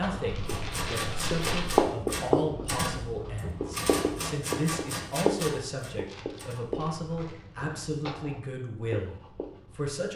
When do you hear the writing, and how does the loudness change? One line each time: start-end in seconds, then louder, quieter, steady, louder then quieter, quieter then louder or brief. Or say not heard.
0.0-10.1 quieter.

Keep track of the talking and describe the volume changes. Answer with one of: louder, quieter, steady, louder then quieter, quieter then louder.
steady.